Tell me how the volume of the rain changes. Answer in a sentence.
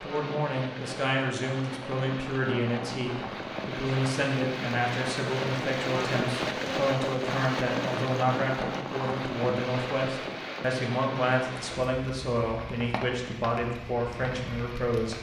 The loudness of the rain goes up, then down.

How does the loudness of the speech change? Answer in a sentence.
The loudness of the speech stays about the same.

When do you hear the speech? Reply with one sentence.
The speech can be heard from 0.0 to 15.1 s.